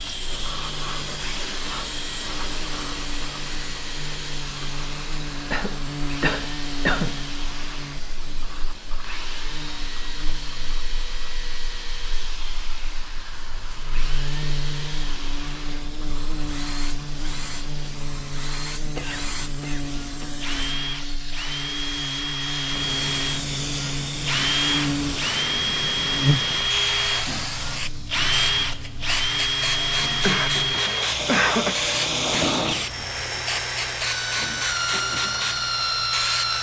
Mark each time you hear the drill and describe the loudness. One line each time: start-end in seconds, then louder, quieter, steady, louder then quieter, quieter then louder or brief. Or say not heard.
0.0-36.5 louder.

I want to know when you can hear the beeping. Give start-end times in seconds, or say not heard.
not heard.